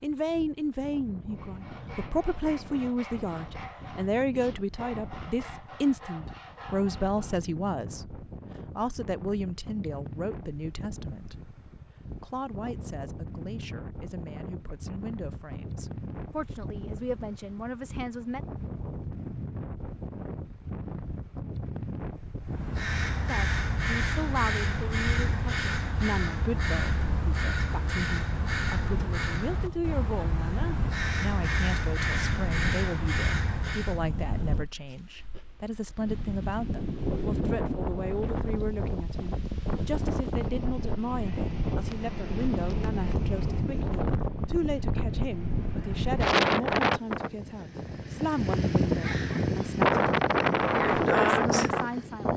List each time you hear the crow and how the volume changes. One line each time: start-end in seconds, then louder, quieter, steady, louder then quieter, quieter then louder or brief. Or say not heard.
22.4-34.0 steady.